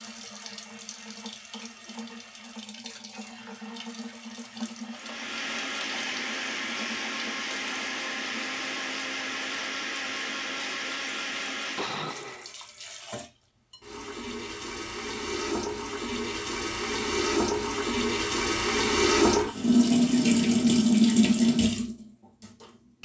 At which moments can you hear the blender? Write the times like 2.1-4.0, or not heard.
4.9-12.6.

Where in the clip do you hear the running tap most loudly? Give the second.
21 s.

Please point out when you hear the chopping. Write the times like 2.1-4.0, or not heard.
not heard.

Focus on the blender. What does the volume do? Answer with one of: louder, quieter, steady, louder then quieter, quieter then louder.
steady.